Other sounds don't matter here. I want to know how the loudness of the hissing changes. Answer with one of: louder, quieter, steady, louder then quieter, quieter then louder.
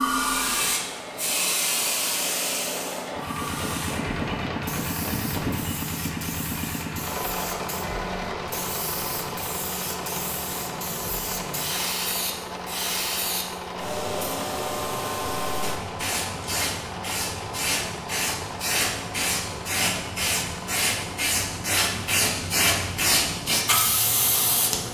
quieter then louder.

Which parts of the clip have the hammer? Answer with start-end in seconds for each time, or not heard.
3.4-5.6.